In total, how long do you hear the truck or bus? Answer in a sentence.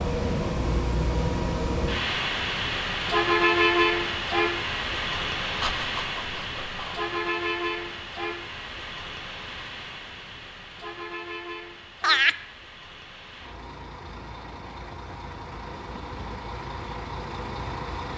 The truck or bus can be heard for 18 seconds in total.